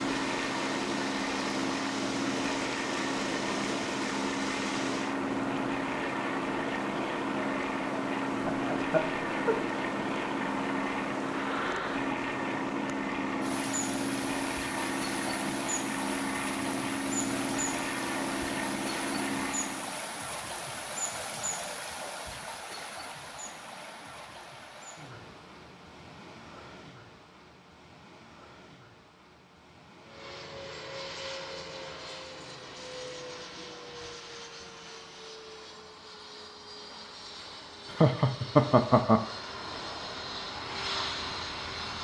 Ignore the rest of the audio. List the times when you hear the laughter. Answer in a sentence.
The laughter can be heard from 8.4 to 9.7 s and from 37.9 to 39.2 s.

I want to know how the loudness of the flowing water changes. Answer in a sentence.
The loudness of the flowing water goes down.